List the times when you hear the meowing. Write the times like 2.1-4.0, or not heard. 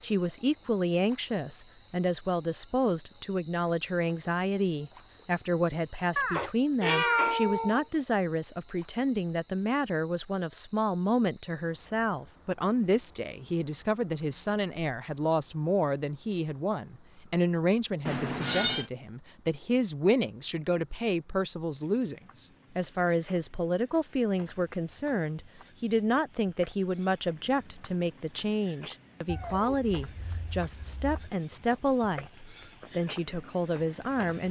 6.2-7.8, 18.1-18.9, 29.2-31.3.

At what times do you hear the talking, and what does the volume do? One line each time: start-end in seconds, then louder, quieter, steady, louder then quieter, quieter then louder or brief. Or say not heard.
0.0-34.4 steady.